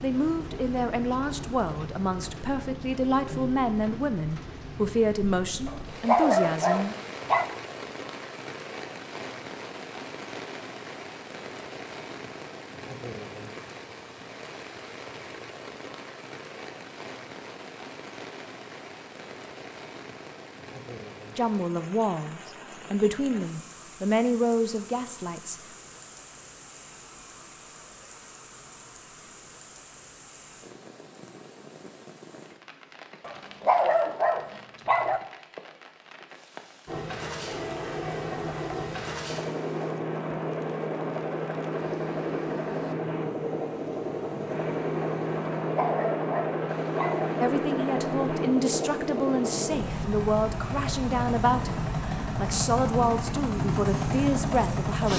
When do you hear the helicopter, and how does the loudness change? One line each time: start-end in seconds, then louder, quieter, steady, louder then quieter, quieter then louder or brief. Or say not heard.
36.9-55.1 steady.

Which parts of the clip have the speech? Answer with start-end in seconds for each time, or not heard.
0.0-7.0, 21.4-25.6, 47.4-55.1.